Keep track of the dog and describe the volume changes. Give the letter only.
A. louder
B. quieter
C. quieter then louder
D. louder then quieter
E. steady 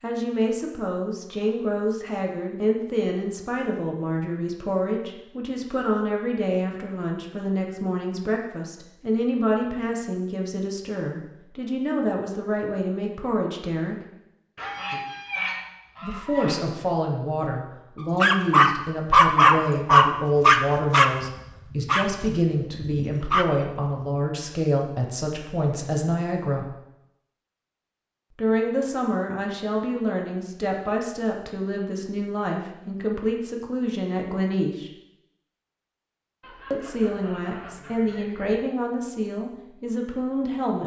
B.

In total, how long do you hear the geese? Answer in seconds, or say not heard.
4 s.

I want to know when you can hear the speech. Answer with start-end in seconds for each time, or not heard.
0.0-13.9, 16.0-26.7, 28.4-34.9, 36.7-40.8.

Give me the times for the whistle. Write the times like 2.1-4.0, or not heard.
not heard.